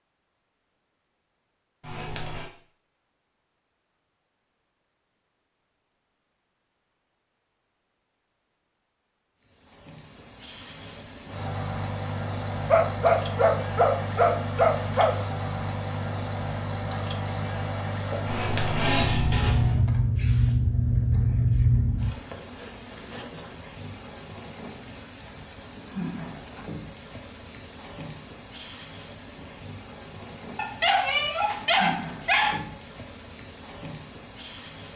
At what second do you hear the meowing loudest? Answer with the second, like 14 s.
19 s.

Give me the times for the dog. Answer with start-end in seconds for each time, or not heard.
12.7-15.2, 30.6-32.6.